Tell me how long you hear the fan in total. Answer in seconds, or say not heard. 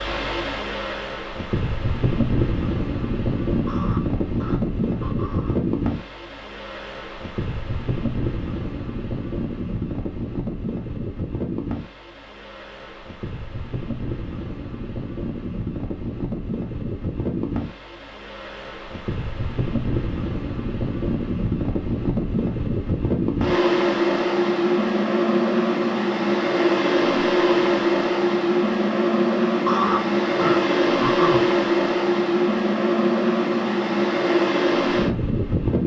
36 s.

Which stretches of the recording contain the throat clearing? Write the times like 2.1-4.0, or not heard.
3.6-5.6, 29.6-31.4.